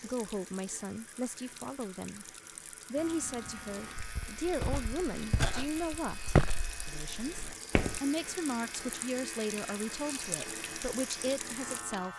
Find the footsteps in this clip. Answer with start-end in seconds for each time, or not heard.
4.0-8.0.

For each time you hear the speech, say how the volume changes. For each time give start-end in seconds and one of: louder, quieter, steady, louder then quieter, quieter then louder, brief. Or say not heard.
0.0-2.2 brief
2.9-12.1 steady.